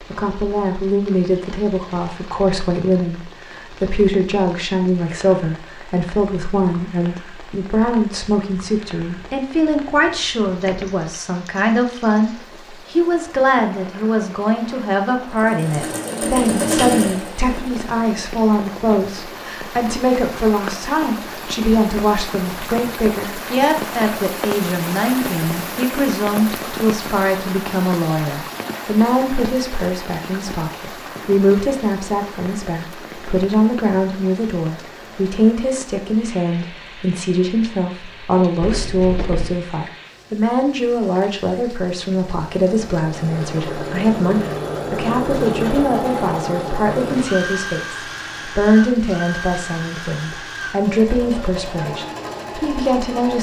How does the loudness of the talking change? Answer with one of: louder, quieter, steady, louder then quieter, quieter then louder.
steady.